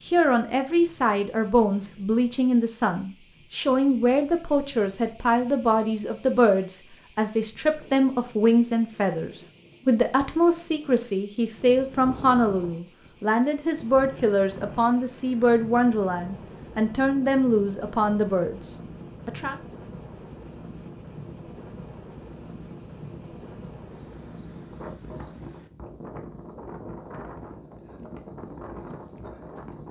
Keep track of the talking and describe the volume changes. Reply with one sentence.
The volume of the talking stays about the same.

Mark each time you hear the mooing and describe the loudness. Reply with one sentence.
The mooing can't be heard in this clip.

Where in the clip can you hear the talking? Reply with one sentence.
You can hear the talking from 0.1 to 19.6 s.